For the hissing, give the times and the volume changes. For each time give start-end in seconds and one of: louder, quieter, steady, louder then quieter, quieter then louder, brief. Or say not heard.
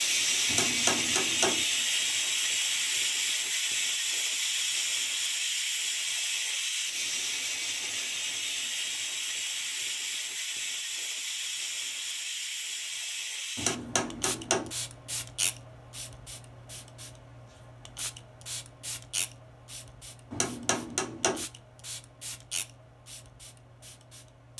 0.0-24.5 quieter.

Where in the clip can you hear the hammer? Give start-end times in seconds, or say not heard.
0.5-1.6, 13.6-14.7, 20.3-21.4.